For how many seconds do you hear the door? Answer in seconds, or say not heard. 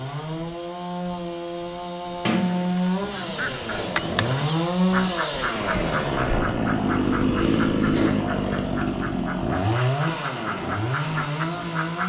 2 s.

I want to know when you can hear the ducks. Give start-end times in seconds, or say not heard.
3.2-12.0.